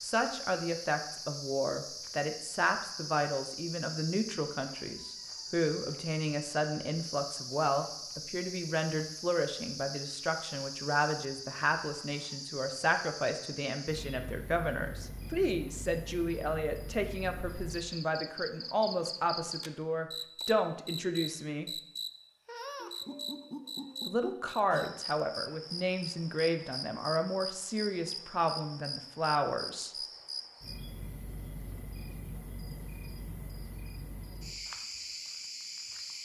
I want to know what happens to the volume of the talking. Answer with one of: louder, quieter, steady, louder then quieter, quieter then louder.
steady.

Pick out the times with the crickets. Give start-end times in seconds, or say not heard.
0.0-36.2.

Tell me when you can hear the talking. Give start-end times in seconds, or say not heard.
0.0-21.7, 24.1-29.9.